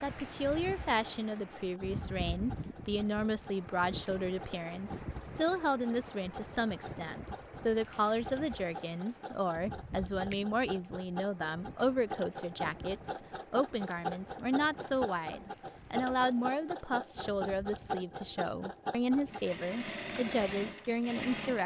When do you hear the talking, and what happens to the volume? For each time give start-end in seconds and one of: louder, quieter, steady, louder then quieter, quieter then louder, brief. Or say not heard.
0.0-21.6 steady.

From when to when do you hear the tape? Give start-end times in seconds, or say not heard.
not heard.